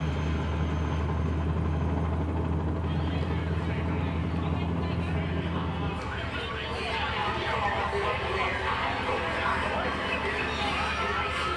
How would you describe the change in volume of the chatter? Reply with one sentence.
The volume of the chatter goes up.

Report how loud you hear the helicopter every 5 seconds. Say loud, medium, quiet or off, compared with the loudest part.
loud, medium, medium.